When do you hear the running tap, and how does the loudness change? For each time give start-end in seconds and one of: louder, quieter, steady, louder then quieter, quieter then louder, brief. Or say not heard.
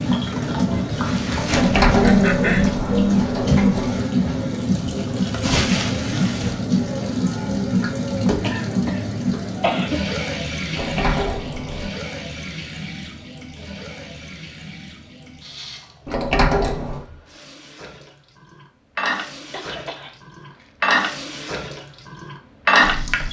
0.0-23.2 quieter then louder.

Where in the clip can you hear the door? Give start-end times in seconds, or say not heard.
1.4-4.0, 10.7-11.9, 16.1-17.1.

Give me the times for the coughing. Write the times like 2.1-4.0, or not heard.
2.0-2.6, 8.4-10.1, 19.5-20.8.